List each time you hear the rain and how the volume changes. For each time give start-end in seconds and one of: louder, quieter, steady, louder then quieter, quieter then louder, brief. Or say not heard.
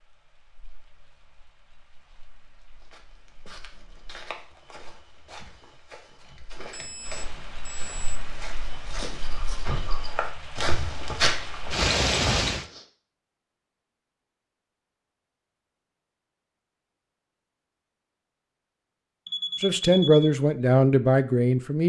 0.0-12.7 louder.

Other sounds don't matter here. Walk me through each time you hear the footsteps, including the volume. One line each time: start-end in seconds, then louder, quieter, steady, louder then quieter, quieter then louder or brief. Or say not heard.
2.8-12.8 louder.